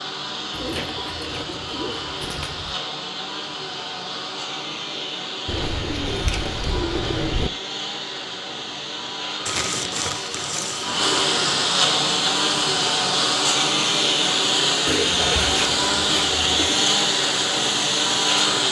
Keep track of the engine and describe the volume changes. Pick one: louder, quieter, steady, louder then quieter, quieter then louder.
louder.